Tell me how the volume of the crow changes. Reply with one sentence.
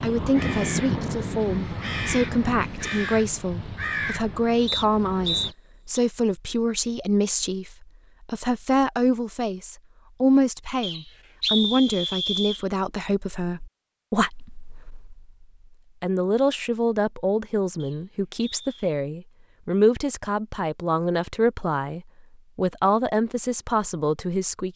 The loudness of the crow goes down.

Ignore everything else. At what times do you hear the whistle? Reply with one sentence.
You can hear the whistle from 4.7 to 6.0 s, from 10.8 to 12.7 s and from 17.8 to 18.9 s.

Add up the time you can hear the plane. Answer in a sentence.
The plane can't be heard in this clip.